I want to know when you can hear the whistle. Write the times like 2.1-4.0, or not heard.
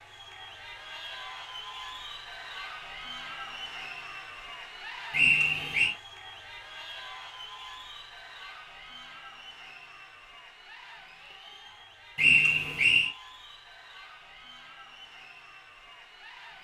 5.1-6.0, 12.2-13.1.